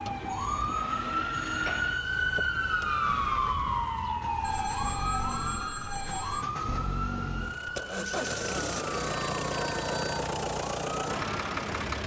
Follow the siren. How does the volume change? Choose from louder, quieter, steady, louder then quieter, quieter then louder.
quieter.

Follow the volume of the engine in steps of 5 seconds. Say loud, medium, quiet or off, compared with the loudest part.
medium, loud, loud.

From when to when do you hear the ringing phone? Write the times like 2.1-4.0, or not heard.
0.3-2.0, 4.4-6.5, 8.4-10.2.